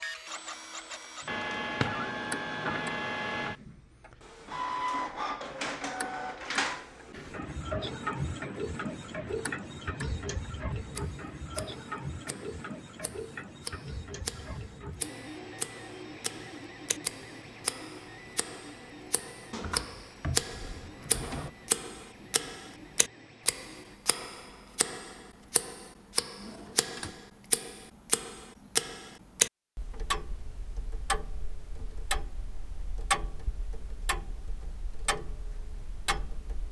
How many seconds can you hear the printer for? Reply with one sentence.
You can hear the printer for 24 seconds altogether.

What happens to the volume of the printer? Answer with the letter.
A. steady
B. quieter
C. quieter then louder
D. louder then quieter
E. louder
B.